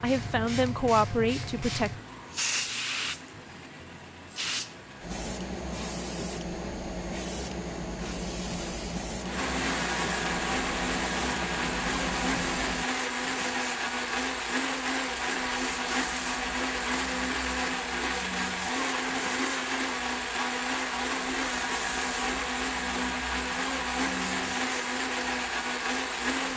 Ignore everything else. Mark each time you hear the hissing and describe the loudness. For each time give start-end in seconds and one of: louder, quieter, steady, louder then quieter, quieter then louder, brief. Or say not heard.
0.0-26.5 quieter.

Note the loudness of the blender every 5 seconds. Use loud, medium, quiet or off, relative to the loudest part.
quiet, medium, loud, loud, loud, loud.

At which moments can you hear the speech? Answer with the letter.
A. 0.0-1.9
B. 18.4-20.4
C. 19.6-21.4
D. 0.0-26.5
A.